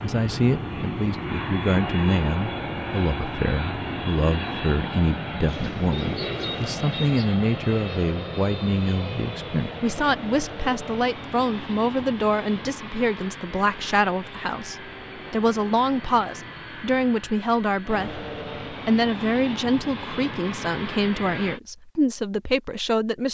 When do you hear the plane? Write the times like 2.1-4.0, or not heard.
0.0-21.6.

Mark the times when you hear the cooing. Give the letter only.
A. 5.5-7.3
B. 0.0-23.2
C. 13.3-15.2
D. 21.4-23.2
A.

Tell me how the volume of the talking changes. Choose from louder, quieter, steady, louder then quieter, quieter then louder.
steady.